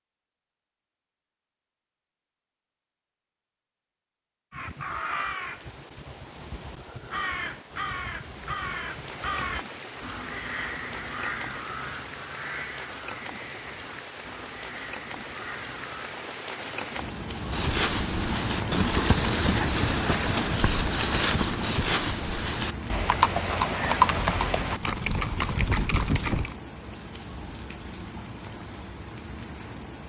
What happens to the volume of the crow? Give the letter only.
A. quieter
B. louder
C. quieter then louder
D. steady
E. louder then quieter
A.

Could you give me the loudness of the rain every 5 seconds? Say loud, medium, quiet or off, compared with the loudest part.
off, medium, medium, loud, loud, medium.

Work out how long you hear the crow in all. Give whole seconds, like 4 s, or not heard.
12 s.